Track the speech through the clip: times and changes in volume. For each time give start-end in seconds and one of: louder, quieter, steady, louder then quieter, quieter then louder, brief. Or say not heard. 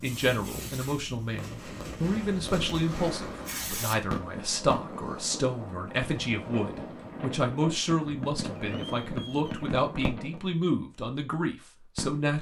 0.0-12.3 steady.